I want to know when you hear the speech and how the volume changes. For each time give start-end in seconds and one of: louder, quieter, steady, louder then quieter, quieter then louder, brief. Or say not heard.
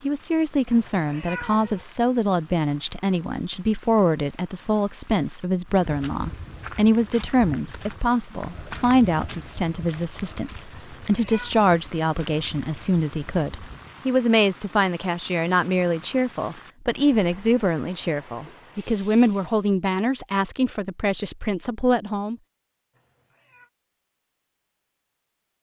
0.0-22.4 steady.